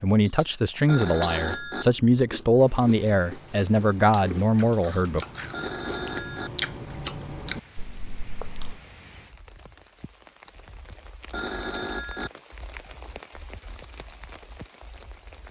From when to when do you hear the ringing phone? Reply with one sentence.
You can hear the ringing phone from 0.8 to 1.9 s, from 5.5 to 6.5 s and from 11.3 to 12.3 s.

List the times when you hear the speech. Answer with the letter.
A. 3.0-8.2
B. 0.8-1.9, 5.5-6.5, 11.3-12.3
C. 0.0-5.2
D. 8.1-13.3
C.